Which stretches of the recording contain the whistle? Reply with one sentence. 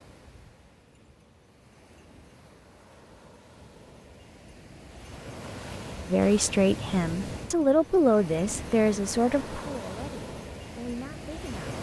The whistle can't be heard in this clip.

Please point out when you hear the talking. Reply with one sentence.
The talking can be heard from 6.1 to 11.7 s.